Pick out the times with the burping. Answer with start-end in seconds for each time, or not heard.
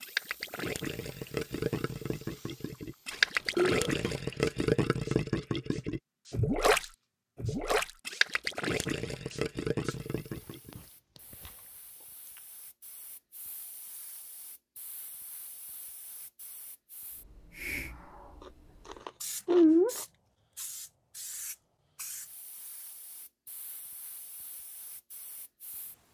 3.1-4.2.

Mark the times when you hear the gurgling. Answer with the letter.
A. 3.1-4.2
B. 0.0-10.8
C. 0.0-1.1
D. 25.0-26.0
B.